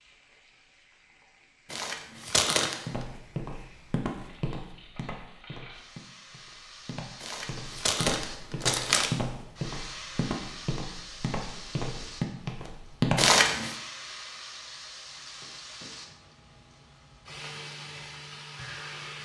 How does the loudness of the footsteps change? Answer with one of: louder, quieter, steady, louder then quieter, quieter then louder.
quieter then louder.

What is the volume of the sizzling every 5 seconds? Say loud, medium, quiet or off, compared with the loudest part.
quiet, loud, loud, loud.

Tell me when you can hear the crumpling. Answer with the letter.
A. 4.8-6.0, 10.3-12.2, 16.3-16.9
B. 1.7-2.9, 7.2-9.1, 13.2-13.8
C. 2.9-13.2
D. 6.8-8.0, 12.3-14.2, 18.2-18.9
B.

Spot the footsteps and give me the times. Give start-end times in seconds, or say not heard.
2.9-13.2.